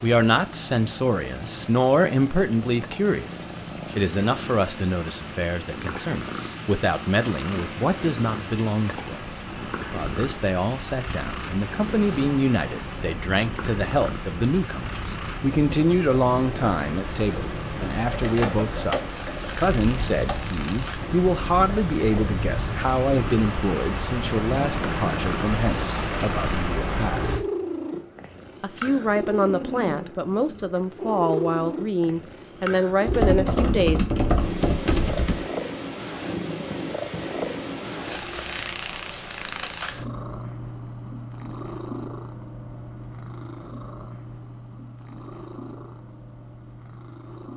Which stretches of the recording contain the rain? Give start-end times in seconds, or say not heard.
0.0-27.4.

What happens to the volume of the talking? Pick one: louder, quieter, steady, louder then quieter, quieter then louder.
steady.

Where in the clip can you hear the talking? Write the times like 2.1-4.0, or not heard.
0.0-27.4, 28.6-34.0.